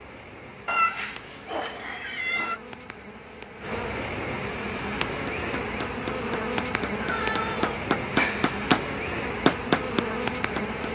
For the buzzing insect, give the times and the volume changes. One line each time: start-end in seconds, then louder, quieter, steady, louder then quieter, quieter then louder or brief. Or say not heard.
0.0-10.9 louder.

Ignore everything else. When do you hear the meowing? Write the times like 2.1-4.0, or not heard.
0.7-2.6, 7.0-8.6.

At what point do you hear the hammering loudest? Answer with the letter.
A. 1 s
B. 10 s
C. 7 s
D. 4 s
B.